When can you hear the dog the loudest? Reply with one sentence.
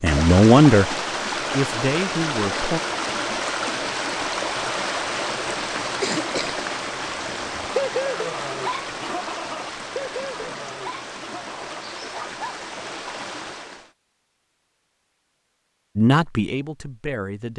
The loudest moment of the dog is at 8 seconds.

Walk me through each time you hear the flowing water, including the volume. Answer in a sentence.
The flowing water can be heard from 0.0 to 13.9 s, getting quieter.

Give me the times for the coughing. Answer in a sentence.
The coughing can be heard from 5.2 to 6.7 s.